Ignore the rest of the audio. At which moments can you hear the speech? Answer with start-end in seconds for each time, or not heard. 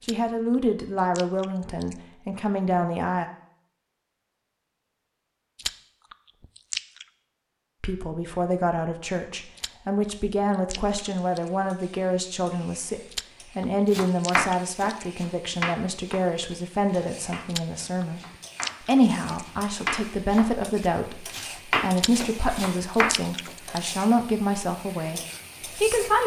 0.1-3.2, 7.8-18.2, 18.9-26.2.